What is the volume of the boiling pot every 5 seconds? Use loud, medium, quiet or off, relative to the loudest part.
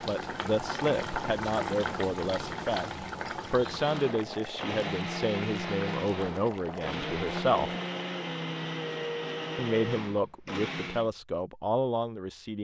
loud, medium, off.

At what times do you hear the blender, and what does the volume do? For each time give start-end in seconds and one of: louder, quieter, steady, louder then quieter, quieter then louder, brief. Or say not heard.
3.6-11.1 steady.